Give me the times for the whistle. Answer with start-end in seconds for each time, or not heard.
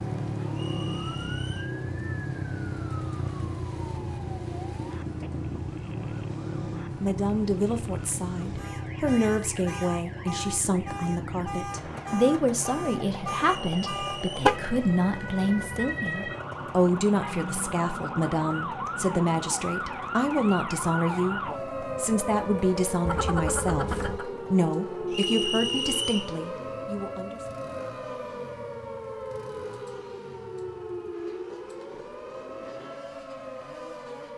0.5-1.8, 13.6-14.4, 25.1-26.4.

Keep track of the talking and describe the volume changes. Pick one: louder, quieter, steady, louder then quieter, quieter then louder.
steady.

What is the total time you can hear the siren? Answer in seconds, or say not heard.
34 s.